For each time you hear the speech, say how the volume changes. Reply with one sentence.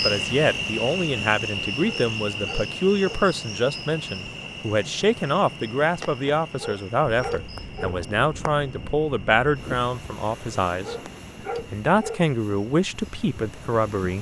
The speech can be heard from 0.0 to 10.9 s, at a steady volume; and briefly from 11.7 to 14.1 s.